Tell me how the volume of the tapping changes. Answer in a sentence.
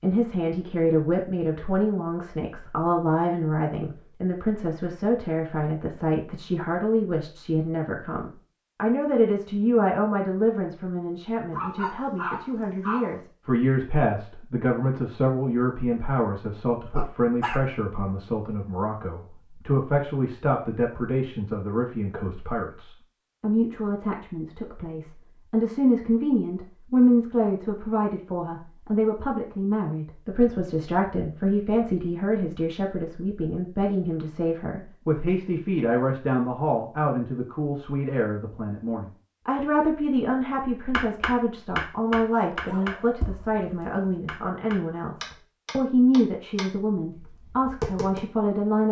The volume of the tapping goes down.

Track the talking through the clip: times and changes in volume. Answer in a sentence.
You can hear the talking from 0.0 to 48.8 s, at a steady volume.